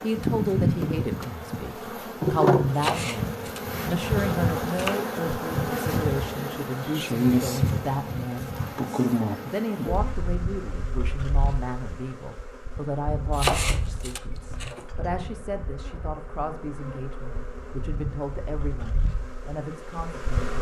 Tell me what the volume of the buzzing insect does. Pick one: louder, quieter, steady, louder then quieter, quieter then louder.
quieter.